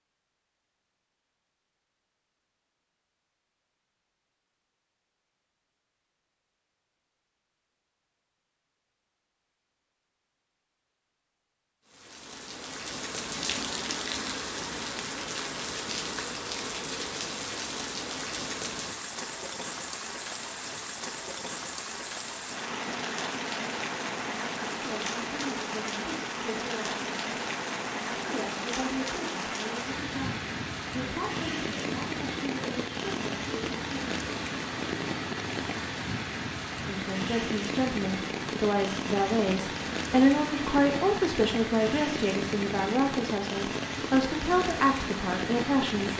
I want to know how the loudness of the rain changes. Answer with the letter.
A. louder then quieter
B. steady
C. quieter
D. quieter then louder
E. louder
B.